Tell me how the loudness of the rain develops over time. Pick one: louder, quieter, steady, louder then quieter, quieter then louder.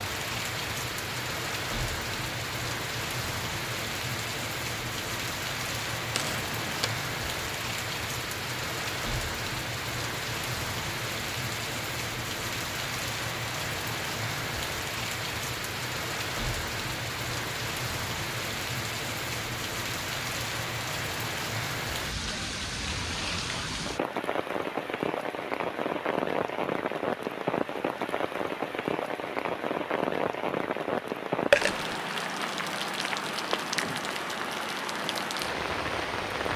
steady.